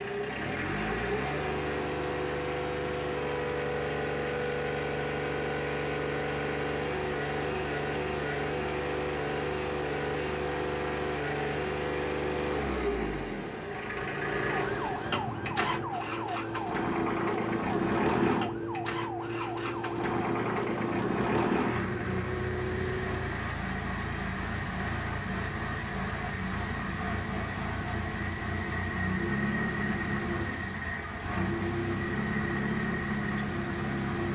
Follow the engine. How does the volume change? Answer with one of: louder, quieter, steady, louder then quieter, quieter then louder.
steady.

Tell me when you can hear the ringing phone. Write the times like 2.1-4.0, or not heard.
not heard.